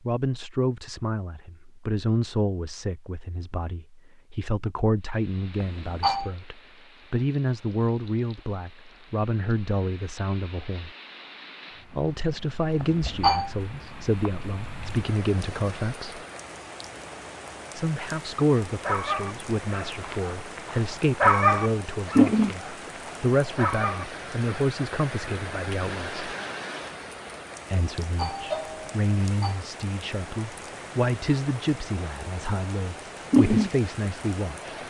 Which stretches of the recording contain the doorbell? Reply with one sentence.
The doorbell can be heard from 5.6 to 6.3 s, from 12.8 to 13.5 s and from 28.0 to 29.6 s.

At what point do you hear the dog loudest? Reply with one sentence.
The loudest moment of the dog is at 21 seconds.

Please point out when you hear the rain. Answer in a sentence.
The rain can be heard from 5.0 to 34.8 s.